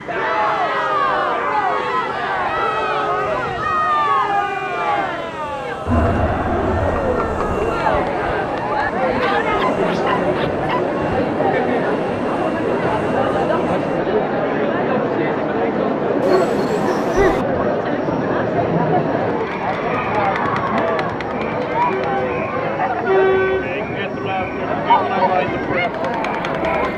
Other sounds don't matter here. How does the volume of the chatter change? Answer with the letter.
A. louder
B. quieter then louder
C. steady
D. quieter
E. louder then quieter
C.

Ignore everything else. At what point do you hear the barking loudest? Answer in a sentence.
The loudest moment of the barking is at 17 seconds.